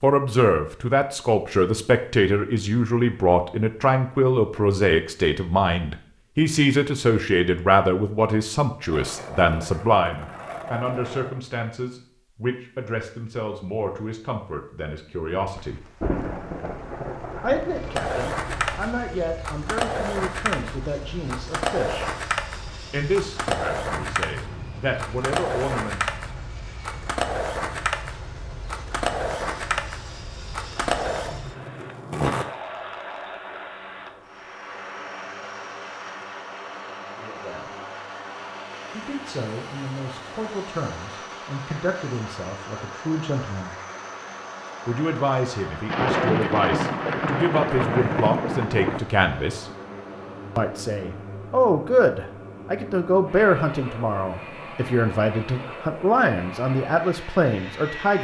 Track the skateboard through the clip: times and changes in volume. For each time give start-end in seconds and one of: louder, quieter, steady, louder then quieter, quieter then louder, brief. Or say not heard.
8.8-11.3 brief
17.9-32.5 steady.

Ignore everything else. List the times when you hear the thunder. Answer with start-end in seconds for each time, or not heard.
15.6-18.9, 45.9-49.0.